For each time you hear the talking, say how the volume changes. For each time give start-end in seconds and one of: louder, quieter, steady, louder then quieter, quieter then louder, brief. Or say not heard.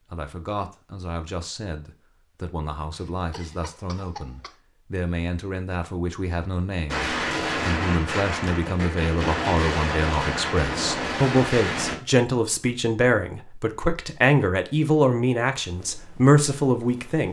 0.1-17.2 louder.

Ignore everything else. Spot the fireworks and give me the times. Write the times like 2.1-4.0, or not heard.
6.8-11.9.